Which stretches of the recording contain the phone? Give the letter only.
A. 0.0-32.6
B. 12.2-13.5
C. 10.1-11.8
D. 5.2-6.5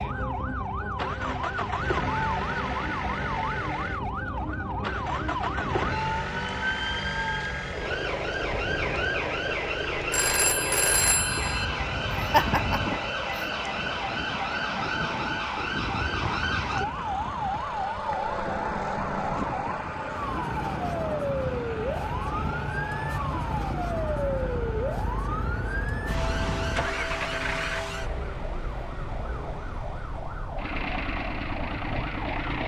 C.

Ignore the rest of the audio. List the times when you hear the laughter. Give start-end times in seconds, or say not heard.
12.2-13.5.